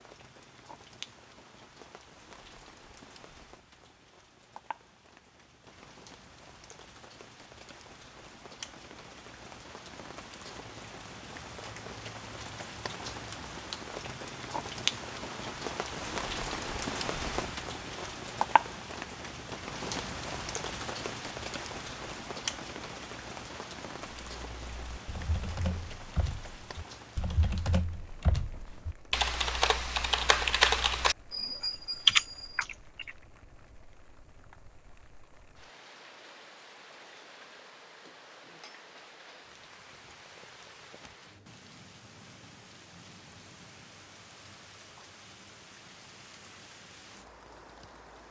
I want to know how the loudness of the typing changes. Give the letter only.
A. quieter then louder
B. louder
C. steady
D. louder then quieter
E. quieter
B.